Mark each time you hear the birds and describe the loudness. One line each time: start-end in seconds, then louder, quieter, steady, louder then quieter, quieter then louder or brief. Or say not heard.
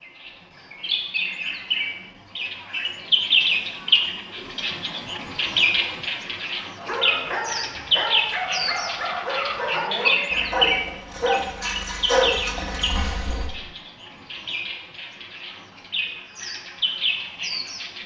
0.0-18.0 quieter.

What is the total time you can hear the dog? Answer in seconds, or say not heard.
7 s.